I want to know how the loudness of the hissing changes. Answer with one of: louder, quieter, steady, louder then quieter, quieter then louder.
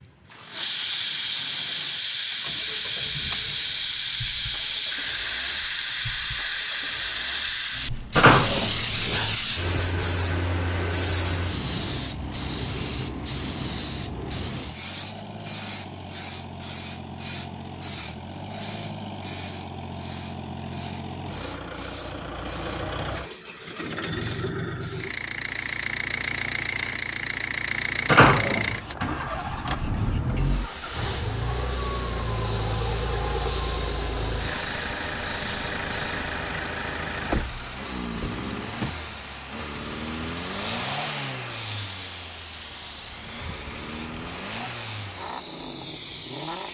quieter then louder.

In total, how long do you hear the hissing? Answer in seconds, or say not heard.
46 s.